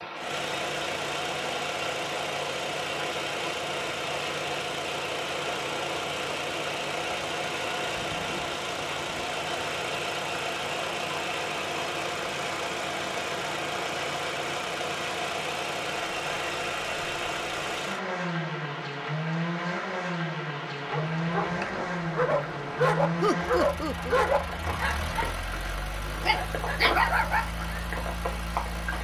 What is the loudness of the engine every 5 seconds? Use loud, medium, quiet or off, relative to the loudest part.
loud, loud, loud, loud, loud, medium.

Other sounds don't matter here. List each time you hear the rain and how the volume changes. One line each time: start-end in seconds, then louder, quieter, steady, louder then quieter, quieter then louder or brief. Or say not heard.
0.0-28.9 steady.